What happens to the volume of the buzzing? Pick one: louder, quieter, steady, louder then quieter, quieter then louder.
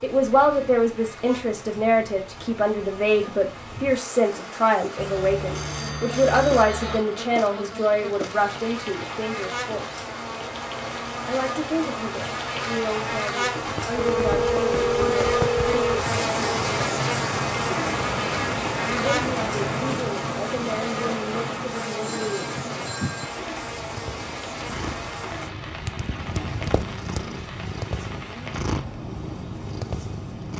louder then quieter.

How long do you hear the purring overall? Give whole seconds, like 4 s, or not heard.
7 s.